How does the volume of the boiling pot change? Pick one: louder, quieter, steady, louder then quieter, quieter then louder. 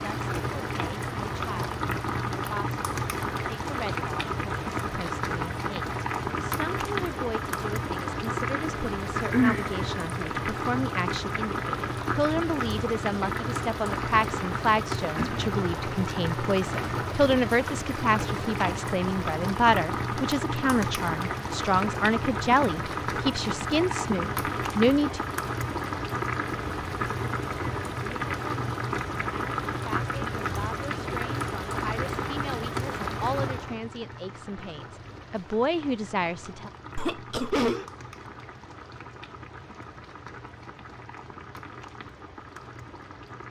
quieter.